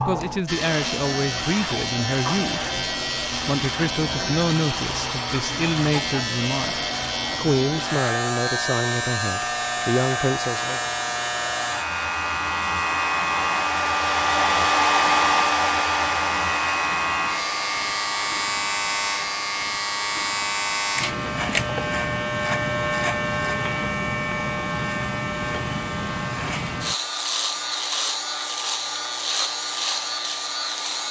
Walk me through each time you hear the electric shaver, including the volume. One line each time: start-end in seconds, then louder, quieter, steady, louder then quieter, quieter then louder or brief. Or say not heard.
0.0-31.0 steady.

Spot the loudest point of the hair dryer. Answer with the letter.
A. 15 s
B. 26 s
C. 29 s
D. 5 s
A.